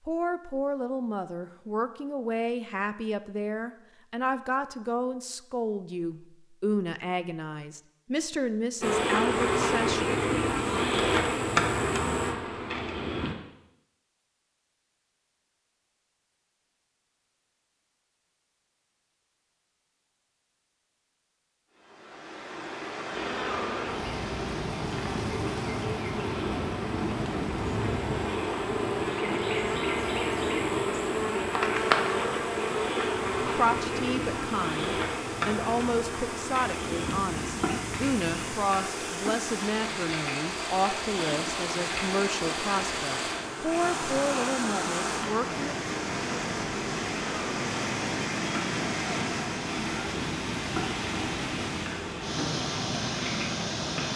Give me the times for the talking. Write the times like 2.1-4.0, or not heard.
0.1-10.1, 33.5-45.8.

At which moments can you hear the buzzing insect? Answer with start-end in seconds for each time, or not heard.
8.8-13.3, 23.1-54.1.